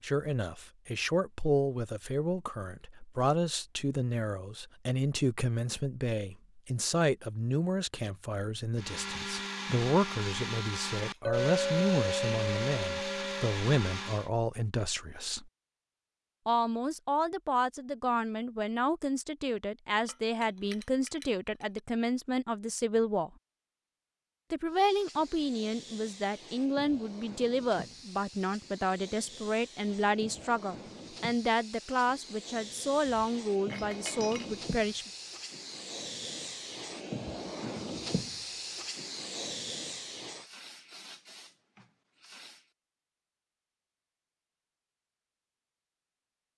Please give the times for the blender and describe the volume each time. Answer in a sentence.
The blender can be heard from 8.8 to 14.3 s, at a steady volume.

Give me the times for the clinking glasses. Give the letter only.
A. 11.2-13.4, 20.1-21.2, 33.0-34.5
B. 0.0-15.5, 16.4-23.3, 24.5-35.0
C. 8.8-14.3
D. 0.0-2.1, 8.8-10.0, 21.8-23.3
A.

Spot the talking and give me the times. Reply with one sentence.
The talking can be heard from 0.0 to 15.5 s, from 16.4 to 23.3 s and from 24.5 to 35.0 s.